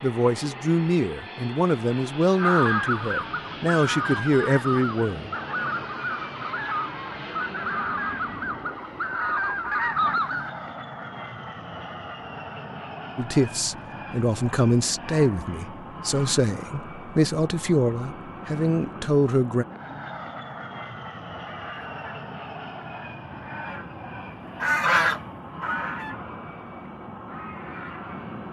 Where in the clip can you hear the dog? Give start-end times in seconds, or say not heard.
not heard.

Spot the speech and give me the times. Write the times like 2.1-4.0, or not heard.
0.0-5.3, 13.2-19.6.